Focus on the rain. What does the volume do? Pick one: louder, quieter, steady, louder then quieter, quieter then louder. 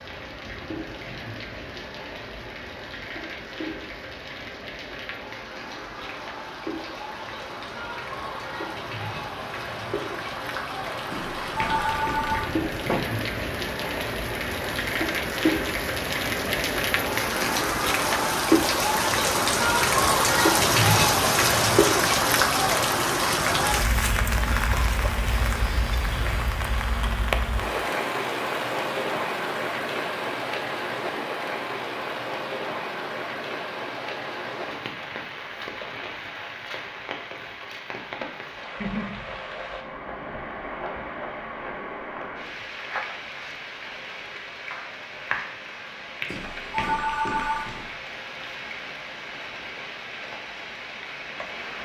louder then quieter.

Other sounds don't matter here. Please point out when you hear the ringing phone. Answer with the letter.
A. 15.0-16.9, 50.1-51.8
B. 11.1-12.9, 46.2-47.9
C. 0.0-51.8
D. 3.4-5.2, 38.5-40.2
B.